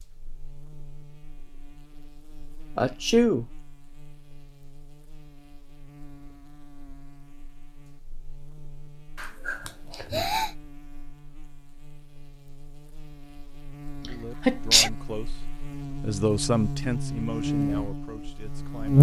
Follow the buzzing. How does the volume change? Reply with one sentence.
The volume of the buzzing goes up.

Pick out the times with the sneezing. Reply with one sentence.
The sneezing can be heard from 2.8 to 3.5 s, from 9.2 to 10.6 s and from 14.4 to 14.9 s.